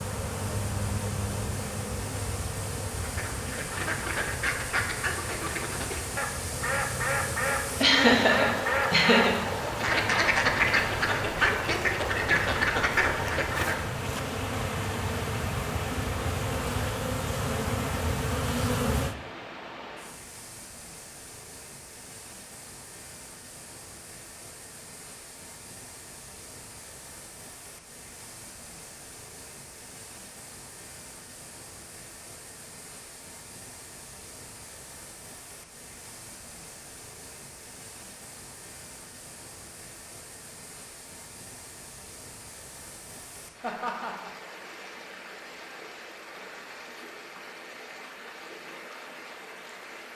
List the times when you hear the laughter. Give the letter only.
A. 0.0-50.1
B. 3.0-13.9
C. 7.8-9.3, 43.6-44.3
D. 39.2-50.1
C.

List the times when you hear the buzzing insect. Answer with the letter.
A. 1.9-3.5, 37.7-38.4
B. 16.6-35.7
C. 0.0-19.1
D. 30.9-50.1
C.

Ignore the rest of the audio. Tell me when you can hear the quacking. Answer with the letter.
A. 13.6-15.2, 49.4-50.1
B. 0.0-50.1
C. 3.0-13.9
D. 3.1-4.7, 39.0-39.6
C.